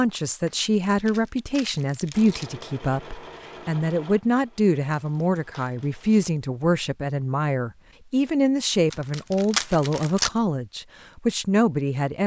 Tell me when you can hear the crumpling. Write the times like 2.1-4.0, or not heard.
0.5-2.5, 4.9-6.0, 8.9-10.3.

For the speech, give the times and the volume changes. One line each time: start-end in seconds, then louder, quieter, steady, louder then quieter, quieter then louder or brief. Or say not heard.
0.0-12.2 steady.